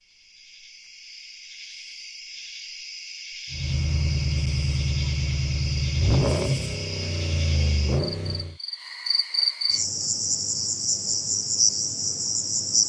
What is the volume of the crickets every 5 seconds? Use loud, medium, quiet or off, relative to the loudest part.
quiet, medium, loud.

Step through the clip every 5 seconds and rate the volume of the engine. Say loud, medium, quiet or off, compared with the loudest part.
loud, loud, off.